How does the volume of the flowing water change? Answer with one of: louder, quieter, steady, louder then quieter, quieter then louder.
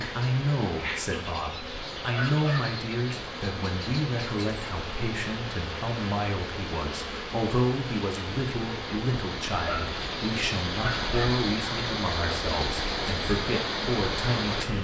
louder.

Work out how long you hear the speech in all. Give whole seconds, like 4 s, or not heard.
15 s.